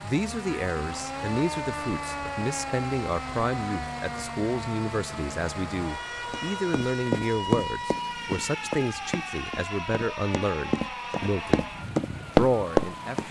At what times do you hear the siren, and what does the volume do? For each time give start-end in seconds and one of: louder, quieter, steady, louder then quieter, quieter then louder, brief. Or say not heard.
0.0-13.2 steady.